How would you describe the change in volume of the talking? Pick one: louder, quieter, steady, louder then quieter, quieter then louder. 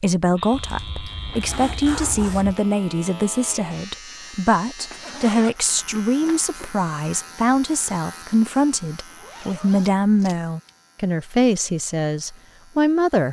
steady.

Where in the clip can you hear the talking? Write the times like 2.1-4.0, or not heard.
0.0-13.2.